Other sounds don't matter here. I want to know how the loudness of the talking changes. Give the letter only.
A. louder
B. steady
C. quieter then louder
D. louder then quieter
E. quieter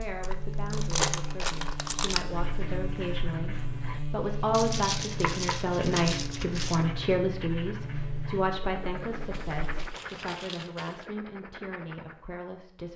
D.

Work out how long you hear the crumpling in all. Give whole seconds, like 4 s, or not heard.
6 s.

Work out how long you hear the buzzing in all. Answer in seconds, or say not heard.
10 s.